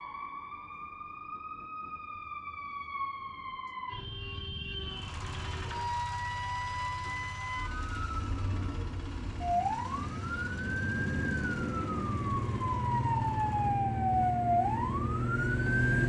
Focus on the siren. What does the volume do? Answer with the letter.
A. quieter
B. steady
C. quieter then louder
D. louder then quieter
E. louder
E.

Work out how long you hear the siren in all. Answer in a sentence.
The siren can be heard for 16 seconds in total.